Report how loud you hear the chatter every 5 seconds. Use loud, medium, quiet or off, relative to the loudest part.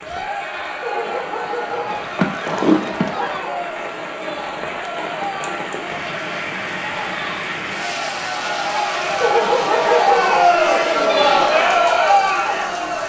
quiet, medium, loud.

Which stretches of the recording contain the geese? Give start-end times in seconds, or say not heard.
1.9-3.5.